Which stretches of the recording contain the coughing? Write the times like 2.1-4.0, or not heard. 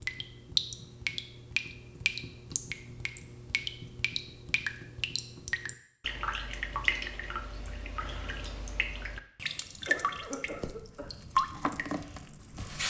9.8-11.1.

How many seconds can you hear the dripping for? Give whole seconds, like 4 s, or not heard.
13 s.